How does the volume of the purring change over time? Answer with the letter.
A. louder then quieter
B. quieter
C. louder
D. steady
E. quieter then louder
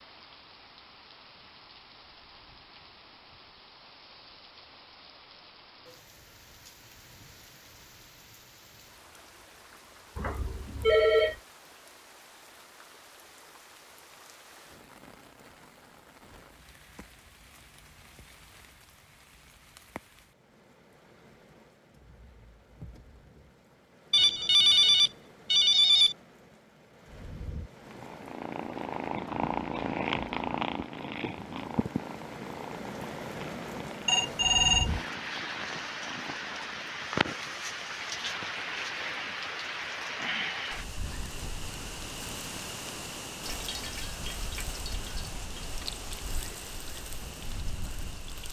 B.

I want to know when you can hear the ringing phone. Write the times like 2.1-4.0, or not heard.
10.2-11.3, 24.1-26.1, 34.0-35.0.